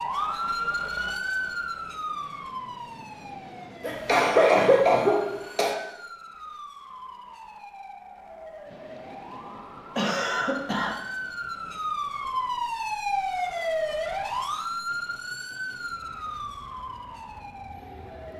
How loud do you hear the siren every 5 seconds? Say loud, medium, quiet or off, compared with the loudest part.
loud, quiet, loud, medium.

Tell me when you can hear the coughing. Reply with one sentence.
The coughing can be heard from 3.8 to 5.8 s and from 9.9 to 10.9 s.